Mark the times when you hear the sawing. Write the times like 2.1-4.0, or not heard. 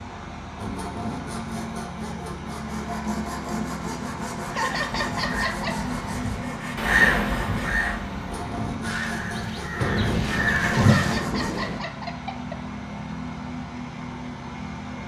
0.6-11.6.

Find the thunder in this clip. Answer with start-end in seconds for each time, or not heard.
9.8-11.8.